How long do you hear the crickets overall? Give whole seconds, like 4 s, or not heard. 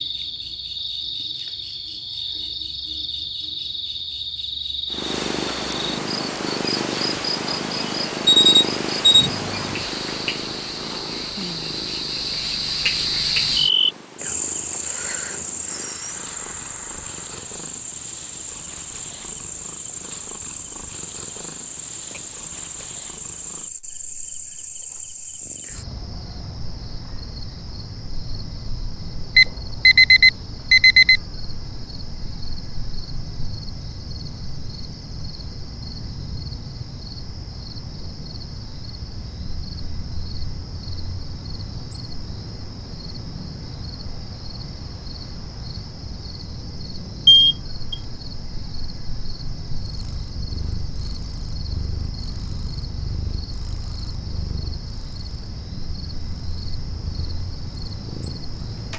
59 s.